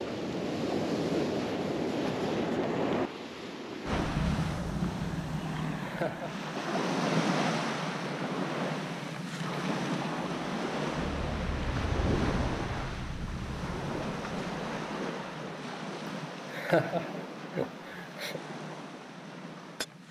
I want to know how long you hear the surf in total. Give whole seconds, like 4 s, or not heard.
20 s.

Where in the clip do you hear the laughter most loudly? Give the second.
17 s.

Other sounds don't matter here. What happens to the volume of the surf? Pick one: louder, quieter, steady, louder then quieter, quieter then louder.
quieter.